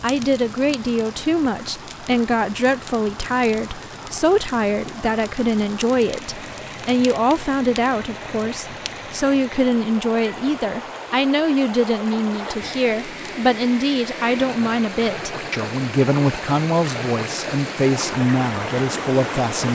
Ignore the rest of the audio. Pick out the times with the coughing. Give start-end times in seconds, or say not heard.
not heard.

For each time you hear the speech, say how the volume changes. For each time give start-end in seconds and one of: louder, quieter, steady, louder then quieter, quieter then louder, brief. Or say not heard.
0.0-19.7 steady.